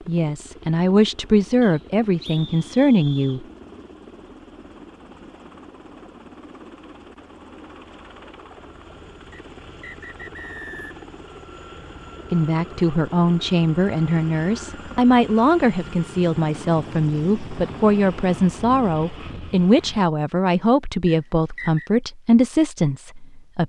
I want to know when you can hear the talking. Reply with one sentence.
The talking can be heard from 0.1 to 3.5 s and from 12.3 to 23.6 s.